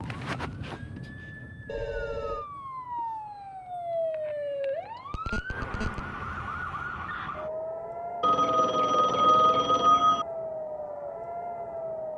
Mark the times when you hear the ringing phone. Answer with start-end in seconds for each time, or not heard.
1.6-2.5, 5.1-6.0, 8.2-10.2.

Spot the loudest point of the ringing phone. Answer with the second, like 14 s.
9 s.